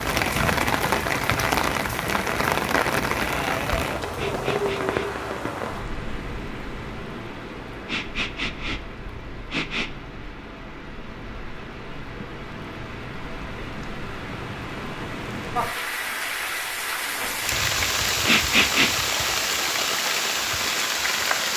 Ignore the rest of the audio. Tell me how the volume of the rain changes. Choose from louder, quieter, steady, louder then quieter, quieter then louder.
quieter then louder.